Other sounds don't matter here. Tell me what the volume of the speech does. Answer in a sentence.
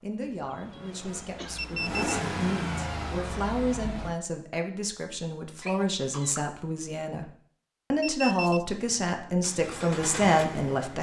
The loudness of the speech goes up.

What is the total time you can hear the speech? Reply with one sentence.
The speech can be heard for 10 seconds in total.